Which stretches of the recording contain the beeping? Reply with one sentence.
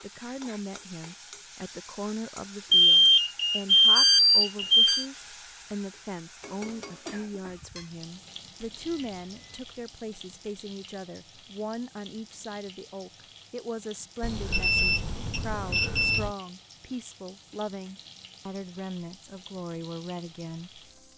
You can hear the beeping from 2.7 to 5.0 s, from 8.8 to 9.6 s and from 14.2 to 16.3 s.